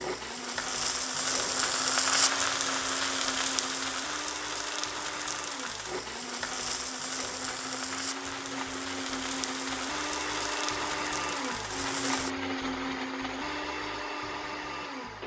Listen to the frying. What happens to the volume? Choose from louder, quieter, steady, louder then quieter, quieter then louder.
quieter.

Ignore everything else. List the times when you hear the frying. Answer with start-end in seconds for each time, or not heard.
0.0-12.3.